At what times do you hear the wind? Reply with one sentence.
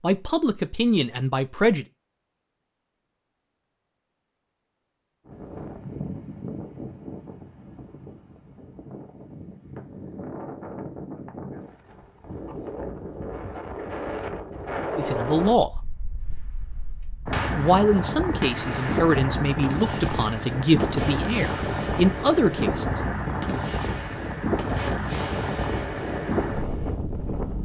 The wind can be heard from 5.2 to 27.6 s.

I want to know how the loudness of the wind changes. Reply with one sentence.
The volume of the wind goes up.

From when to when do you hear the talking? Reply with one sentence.
You can hear the talking from 0.0 to 1.9 s, from 14.9 to 15.8 s and from 17.6 to 23.0 s.